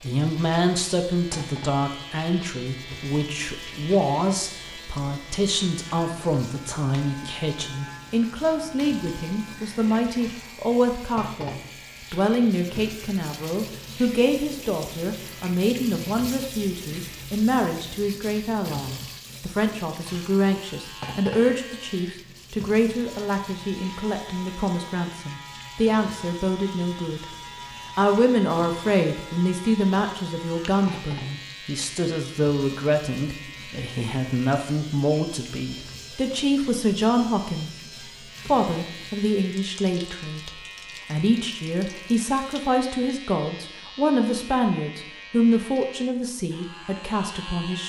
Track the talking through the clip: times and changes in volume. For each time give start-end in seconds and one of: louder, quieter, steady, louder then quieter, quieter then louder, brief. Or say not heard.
0.0-27.3 steady
27.9-47.8 steady.